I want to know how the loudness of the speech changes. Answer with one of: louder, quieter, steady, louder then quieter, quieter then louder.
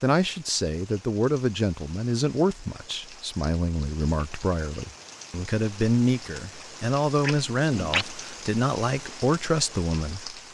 steady.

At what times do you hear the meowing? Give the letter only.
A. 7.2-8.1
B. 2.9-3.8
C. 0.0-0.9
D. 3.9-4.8
A.